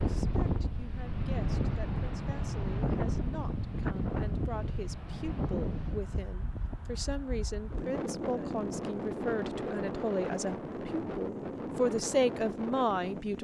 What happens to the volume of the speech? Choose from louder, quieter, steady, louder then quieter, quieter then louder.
louder.